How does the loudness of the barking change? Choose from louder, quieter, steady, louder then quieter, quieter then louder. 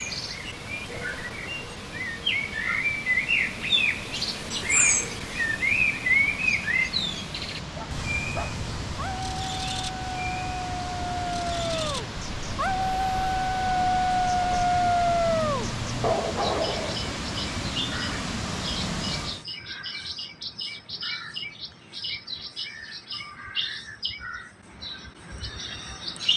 louder.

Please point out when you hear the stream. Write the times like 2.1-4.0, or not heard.
0.0-19.4.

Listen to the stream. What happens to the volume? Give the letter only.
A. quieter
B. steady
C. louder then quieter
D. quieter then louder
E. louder
E.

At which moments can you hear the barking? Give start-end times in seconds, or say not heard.
7.8-17.1.